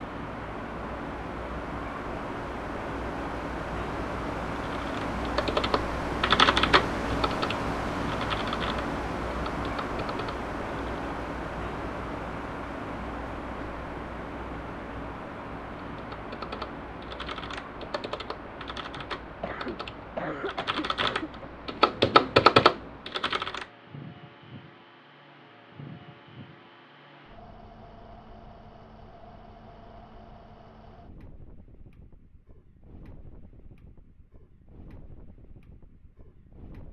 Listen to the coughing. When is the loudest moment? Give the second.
20 s.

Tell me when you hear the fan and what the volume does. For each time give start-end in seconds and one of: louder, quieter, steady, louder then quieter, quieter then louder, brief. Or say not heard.
0.0-36.8 quieter.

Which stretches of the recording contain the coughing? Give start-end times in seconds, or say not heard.
18.9-21.5.